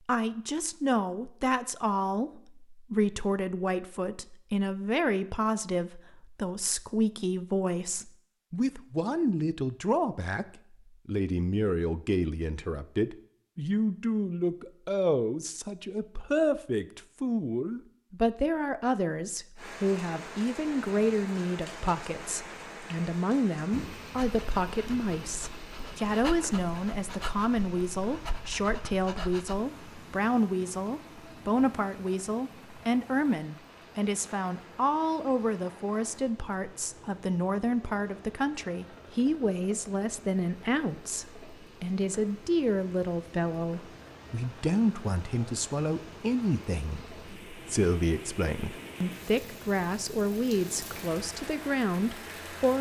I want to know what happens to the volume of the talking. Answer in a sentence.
The volume of the talking stays about the same.